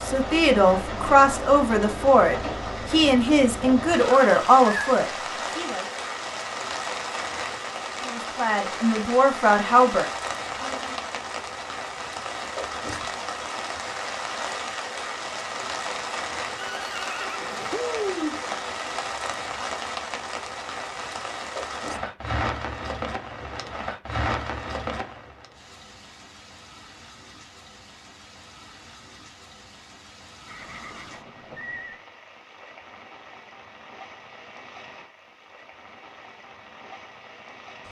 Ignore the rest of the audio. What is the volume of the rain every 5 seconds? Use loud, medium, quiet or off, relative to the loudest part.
loud, loud, loud, loud, loud, quiet, quiet, quiet.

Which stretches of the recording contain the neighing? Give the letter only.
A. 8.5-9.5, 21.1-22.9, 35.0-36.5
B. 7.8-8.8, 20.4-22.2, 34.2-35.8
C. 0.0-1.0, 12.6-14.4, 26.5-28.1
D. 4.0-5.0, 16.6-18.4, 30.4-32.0
D.